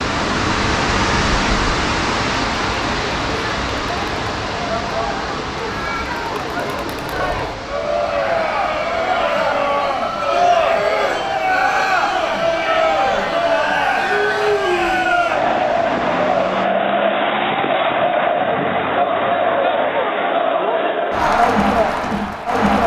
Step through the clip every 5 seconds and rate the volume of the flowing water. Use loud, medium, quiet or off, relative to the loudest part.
loud, medium, quiet, quiet, off.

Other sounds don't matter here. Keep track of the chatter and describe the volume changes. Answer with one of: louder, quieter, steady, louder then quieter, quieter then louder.
louder.